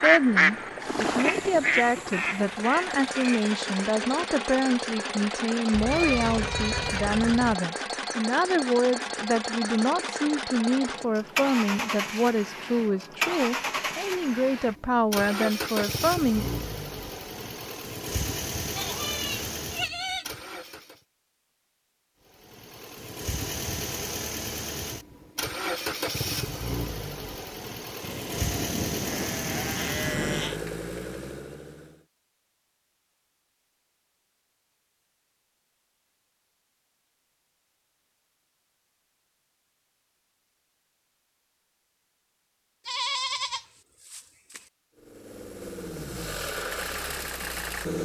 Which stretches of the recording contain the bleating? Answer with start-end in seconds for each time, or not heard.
5.7-7.5, 18.8-20.2, 28.0-30.6, 42.9-44.6.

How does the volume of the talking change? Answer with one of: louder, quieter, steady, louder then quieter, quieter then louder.
steady.